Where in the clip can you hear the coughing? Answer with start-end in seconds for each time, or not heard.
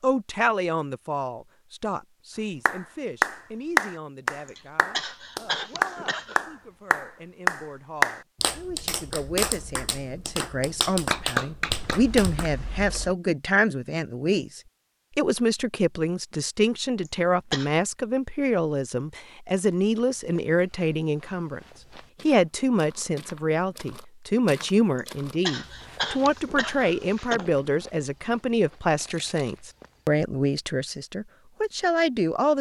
4.5-6.5, 17.1-17.7, 24.9-27.6.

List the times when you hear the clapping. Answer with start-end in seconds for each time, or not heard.
2.6-12.5.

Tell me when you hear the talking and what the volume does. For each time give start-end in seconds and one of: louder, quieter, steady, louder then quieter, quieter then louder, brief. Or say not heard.
0.0-21.6 quieter then louder
22.2-32.5 steady.